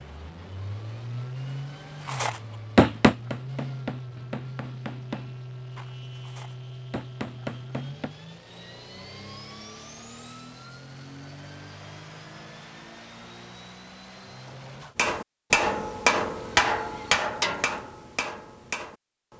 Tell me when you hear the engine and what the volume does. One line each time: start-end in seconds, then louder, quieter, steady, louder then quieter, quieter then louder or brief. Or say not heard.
0.0-14.9 quieter.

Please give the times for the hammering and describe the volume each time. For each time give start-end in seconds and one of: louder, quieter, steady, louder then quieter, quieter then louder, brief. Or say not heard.
2.0-8.2 quieter then louder
14.9-19.3 quieter.